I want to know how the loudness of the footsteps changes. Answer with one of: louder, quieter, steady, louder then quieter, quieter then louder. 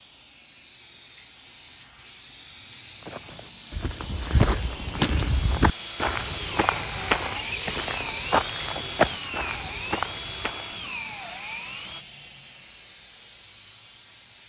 steady.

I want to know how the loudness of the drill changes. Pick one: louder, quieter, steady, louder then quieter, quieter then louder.
steady.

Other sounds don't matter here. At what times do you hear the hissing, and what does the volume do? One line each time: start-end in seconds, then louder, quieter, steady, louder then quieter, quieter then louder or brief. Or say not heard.
0.0-14.4 louder then quieter.